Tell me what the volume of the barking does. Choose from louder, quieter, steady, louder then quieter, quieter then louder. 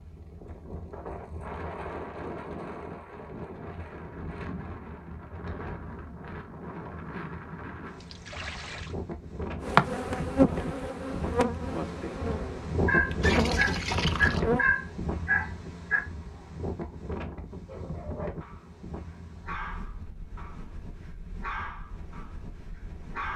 quieter.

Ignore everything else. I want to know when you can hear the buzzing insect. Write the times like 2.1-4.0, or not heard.
9.6-14.7.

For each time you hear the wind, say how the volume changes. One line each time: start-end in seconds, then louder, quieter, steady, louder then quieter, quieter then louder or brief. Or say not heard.
0.0-23.3 louder then quieter.